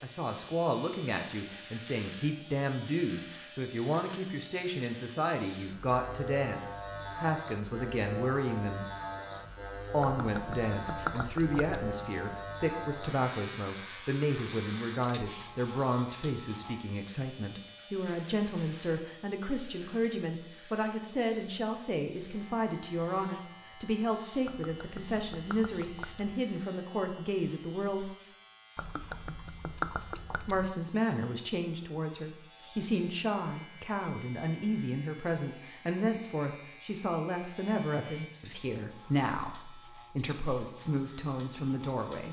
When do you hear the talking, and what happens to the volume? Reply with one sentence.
The talking can be heard from 0.0 to 8.8 s, at a steady volume; from 9.9 to 28.2 s, at a steady volume; and from 30.4 to 42.2 s, at a steady volume.